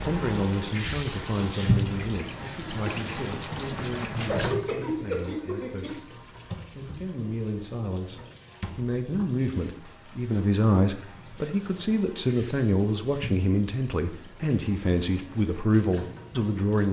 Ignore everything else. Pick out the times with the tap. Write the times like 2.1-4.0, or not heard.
0.0-16.8.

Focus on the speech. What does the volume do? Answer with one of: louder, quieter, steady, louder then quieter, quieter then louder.
quieter then louder.